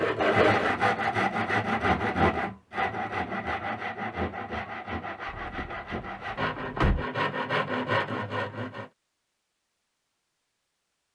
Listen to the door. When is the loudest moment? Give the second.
7 s.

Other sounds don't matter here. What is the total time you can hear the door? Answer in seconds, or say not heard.
2 s.